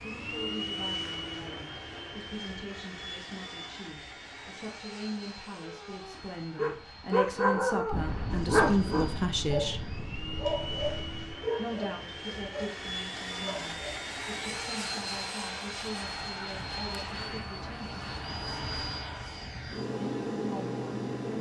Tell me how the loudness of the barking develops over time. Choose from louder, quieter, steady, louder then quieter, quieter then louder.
quieter.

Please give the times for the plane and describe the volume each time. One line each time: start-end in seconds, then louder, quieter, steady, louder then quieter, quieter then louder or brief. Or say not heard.
0.0-21.3 quieter then louder.